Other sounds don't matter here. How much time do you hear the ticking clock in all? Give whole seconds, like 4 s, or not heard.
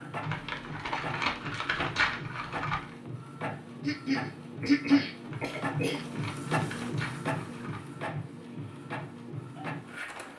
not heard.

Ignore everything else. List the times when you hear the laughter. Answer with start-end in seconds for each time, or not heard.
not heard.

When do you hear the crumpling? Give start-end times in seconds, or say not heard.
0.2-2.9, 5.2-7.8.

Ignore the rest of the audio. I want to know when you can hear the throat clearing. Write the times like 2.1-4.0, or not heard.
3.8-6.0.